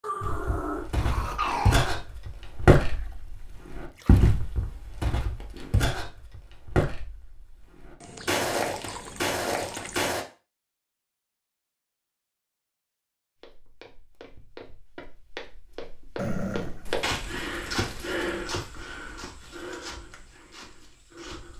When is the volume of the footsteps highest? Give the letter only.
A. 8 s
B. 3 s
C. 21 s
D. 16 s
B.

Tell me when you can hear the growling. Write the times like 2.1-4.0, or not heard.
0.0-1.9, 16.1-16.9.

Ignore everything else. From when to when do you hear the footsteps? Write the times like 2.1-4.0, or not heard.
0.2-10.2, 13.3-21.5.